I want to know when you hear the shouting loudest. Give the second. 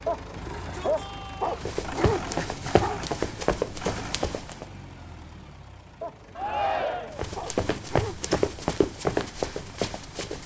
7 s.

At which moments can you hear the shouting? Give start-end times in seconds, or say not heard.
0.3-1.7, 6.3-7.2.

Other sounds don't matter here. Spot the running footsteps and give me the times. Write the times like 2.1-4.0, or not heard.
1.6-4.7, 7.2-10.4.